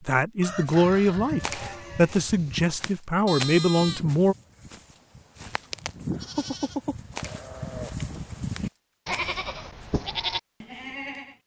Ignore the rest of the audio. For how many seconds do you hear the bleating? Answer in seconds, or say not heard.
11 s.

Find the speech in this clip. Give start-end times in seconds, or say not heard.
0.1-4.3.